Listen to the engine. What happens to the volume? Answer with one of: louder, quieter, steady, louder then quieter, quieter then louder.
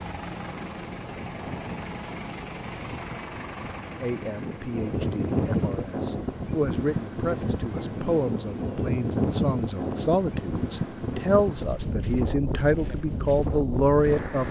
quieter.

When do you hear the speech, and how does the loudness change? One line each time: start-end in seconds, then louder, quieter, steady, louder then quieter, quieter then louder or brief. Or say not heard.
4.0-14.4 louder.